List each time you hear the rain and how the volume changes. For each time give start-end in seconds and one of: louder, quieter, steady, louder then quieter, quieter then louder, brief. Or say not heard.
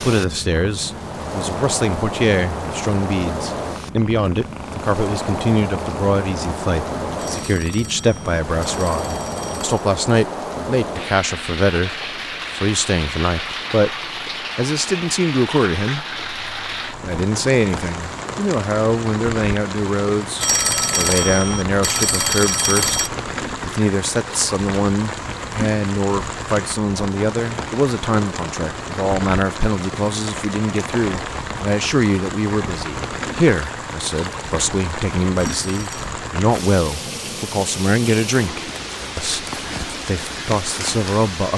0.0-41.5 steady.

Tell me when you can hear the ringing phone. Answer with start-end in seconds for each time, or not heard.
7.2-9.8, 20.4-23.1, 35.4-36.1.